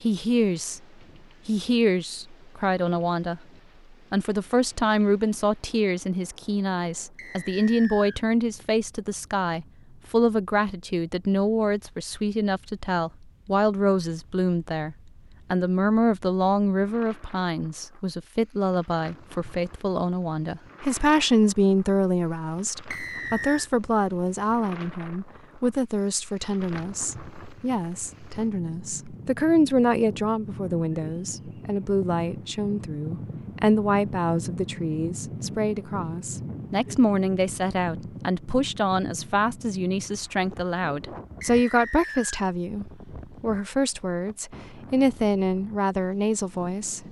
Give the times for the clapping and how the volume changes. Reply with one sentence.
You can't hear the clapping here.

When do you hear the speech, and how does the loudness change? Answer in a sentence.
The speech can be heard briefly from 0.0 to 0.8 s; briefly from 1.4 to 3.4 s; and from 4.1 to 47.0 s, at a steady volume.